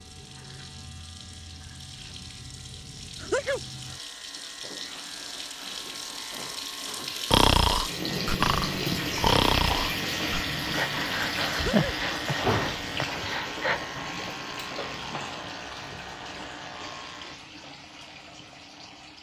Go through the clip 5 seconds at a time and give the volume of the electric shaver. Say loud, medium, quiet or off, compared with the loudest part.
quiet, medium, loud, medium.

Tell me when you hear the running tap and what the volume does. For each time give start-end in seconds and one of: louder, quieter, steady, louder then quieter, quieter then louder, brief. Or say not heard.
0.0-19.1 louder then quieter.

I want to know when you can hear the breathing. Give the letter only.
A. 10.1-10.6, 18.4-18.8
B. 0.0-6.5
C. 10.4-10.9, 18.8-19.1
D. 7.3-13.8
D.